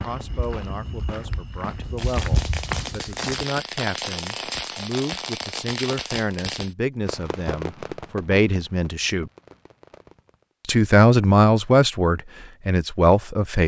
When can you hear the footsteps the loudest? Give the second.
2 s.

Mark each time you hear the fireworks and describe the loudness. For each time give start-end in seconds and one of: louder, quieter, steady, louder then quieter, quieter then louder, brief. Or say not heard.
1.9-10.6 quieter.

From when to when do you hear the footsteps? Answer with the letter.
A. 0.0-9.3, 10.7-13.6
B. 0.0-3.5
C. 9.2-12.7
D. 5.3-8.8
B.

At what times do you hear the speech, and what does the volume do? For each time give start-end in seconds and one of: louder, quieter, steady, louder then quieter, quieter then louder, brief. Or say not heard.
0.0-9.3 louder
10.7-13.6 brief.